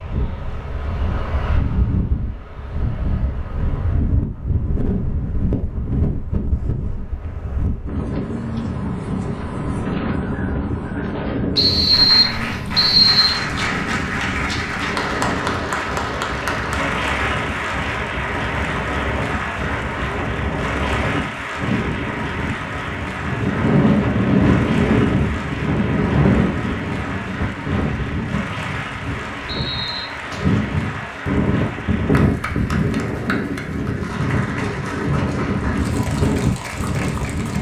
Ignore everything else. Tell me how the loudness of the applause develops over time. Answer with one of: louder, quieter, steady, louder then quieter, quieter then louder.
quieter.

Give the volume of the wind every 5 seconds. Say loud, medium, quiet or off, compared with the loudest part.
medium, medium, medium, medium, loud, loud, loud, loud.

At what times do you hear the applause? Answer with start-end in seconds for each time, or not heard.
11.9-37.5.